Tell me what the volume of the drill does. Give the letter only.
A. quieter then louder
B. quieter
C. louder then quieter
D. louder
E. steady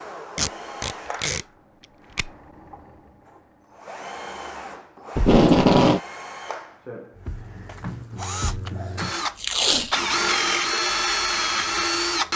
D.